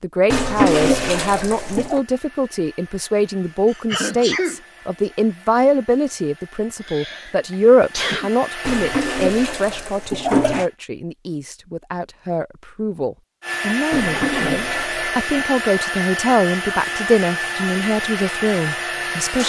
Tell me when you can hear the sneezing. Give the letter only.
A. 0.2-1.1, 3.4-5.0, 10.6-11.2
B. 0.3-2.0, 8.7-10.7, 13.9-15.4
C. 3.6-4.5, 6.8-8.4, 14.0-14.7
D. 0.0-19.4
C.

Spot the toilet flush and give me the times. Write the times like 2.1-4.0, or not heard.
0.3-2.0, 8.7-10.7, 13.9-15.4.